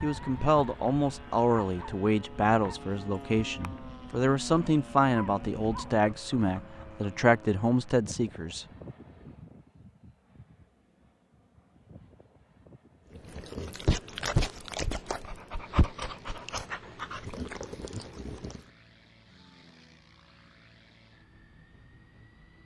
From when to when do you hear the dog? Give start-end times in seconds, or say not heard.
0.0-7.0, 13.1-18.6.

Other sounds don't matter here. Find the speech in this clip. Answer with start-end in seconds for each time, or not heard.
0.0-8.7.